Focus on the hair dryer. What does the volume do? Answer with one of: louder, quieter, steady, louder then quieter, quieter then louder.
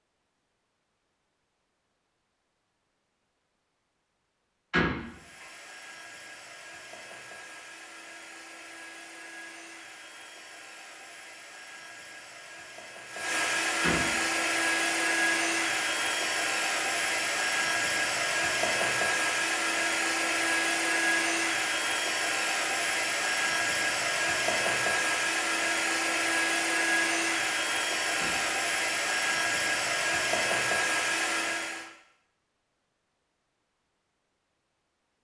louder.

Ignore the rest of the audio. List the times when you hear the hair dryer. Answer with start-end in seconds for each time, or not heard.
5.0-31.9.